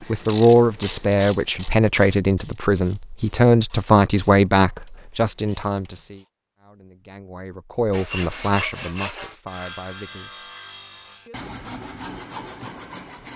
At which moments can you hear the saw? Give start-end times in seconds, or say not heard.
7.9-13.3.